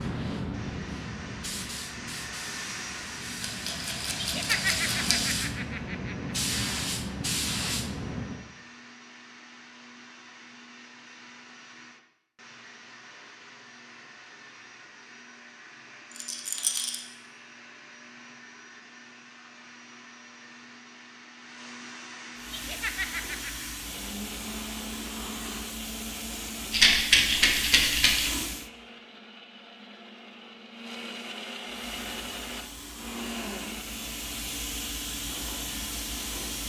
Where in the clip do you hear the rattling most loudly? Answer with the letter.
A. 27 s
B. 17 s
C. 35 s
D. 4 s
A.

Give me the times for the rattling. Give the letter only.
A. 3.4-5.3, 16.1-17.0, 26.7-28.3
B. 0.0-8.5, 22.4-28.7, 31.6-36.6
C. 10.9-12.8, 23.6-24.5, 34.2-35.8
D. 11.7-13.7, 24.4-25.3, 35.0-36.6
A.